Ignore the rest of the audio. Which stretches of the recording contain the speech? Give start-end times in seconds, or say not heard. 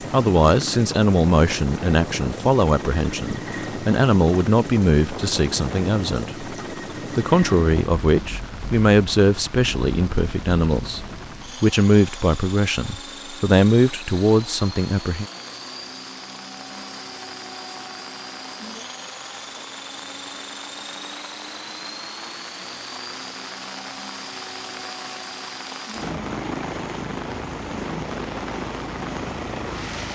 0.0-6.5, 7.2-15.2.